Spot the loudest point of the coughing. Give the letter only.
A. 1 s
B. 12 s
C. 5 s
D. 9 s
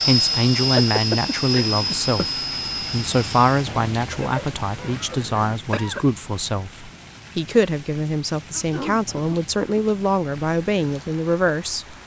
A.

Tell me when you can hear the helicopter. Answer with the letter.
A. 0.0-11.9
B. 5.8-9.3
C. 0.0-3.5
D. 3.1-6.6
C.